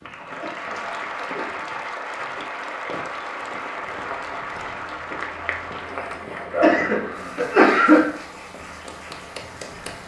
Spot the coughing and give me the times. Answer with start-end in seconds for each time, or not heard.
0.3-1.6, 6.5-8.1.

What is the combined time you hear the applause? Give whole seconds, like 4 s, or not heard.
10 s.